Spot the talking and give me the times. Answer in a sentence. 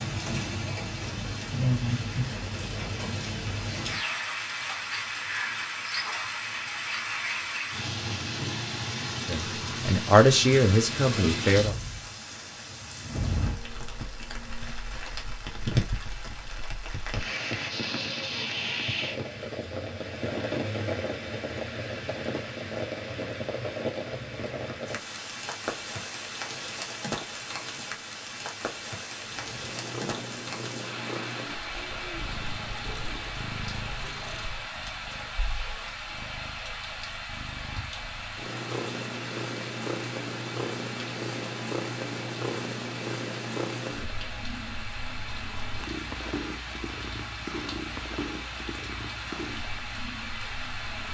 You can hear the talking from 9.2 to 11.8 s.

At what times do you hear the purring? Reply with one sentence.
The purring can be heard from 29.1 to 51.0 s.